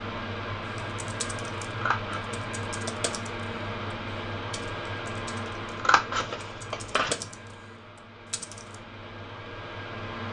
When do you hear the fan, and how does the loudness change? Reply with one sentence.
The fan can be heard from 0.0 to 10.2 s, getting quieter.